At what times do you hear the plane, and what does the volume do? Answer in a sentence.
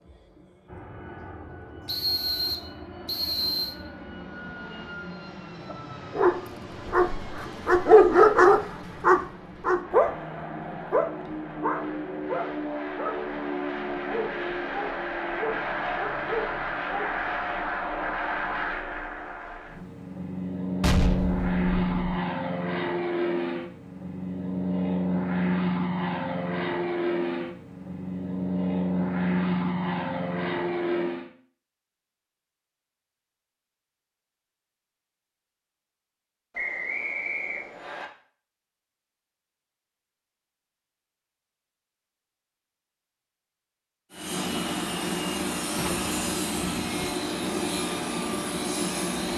The plane can be heard from 0.0 to 31.3 s, getting louder; and from 44.1 to 49.3 s, at a steady volume.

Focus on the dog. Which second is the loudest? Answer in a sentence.
The loudest moment of the dog is at 8 seconds.